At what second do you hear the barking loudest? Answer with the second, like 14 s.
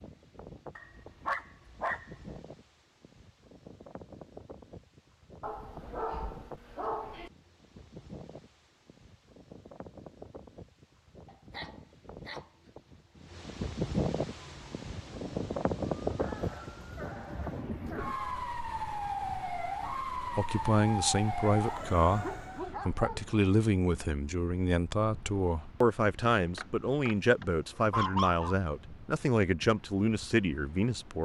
28 s.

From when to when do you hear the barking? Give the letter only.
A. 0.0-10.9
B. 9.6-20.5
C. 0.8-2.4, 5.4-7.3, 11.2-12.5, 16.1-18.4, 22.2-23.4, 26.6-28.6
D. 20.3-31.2
C.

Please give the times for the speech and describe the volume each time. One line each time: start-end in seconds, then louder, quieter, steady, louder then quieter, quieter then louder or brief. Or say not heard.
20.3-31.2 steady.